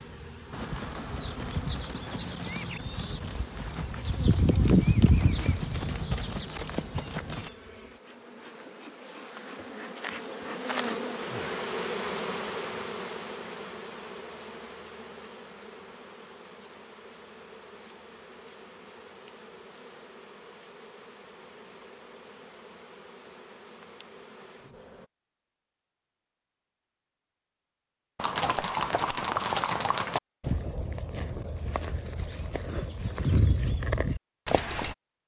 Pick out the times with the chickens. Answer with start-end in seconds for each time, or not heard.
not heard.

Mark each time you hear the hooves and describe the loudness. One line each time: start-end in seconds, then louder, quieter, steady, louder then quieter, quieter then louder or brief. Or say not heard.
0.5-7.5 louder then quieter
28.1-35.0 quieter then louder.